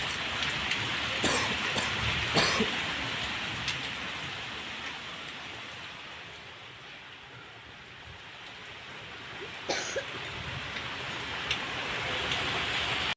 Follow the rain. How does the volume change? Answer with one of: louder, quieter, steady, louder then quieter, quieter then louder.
quieter then louder.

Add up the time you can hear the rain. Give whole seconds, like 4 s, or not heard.
13 s.